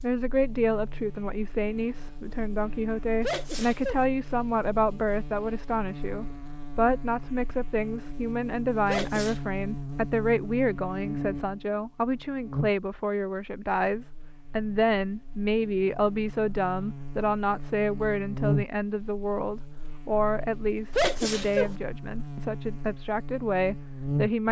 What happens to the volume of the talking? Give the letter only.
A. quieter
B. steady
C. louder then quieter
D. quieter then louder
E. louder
B.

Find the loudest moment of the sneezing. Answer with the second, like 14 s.
21 s.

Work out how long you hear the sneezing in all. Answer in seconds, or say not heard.
2 s.